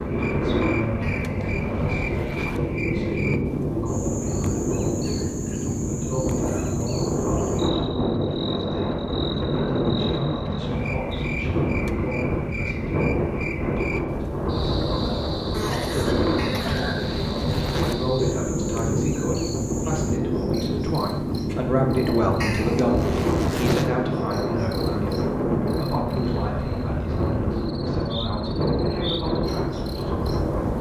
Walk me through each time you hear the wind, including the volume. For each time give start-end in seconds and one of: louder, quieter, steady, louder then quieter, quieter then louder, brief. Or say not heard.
0.0-30.7 steady.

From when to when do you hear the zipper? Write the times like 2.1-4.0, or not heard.
1.0-2.7, 16.4-18.1, 22.4-23.9.